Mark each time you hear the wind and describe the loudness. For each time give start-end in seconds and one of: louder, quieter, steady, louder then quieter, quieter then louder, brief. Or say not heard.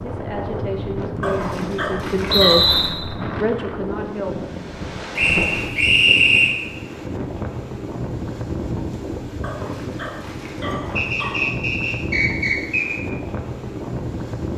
0.0-14.5 steady.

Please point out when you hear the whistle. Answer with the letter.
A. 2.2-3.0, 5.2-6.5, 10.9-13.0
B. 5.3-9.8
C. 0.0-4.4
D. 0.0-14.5
A.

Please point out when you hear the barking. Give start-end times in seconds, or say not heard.
1.2-2.9, 9.4-11.4.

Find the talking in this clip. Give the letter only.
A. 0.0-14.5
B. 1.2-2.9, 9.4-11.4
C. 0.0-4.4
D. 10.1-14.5
C.